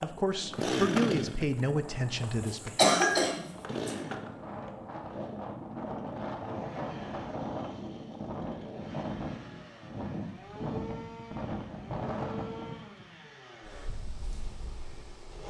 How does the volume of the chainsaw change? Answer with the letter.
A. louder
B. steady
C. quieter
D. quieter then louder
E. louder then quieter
C.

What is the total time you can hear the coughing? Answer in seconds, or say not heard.
2 s.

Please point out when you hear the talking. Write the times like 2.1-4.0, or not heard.
0.0-2.9.